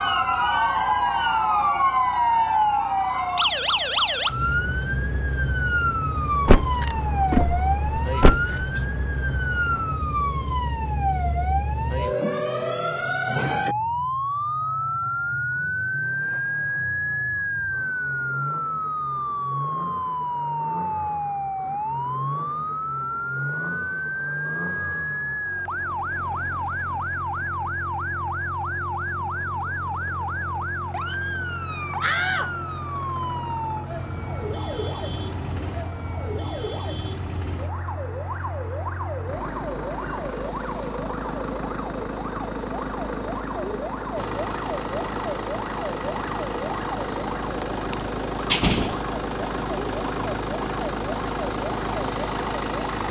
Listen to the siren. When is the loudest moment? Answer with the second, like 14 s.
2 s.